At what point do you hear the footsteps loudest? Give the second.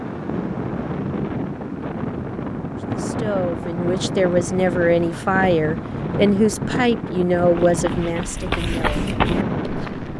9 s.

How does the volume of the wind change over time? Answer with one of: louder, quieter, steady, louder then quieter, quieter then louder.
steady.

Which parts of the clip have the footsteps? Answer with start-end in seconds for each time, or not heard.
7.5-10.1.